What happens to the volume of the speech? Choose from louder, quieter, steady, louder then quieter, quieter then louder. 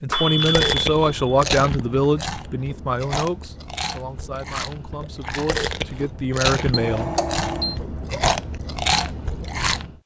quieter then louder.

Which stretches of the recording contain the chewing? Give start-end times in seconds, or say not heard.
0.2-9.9.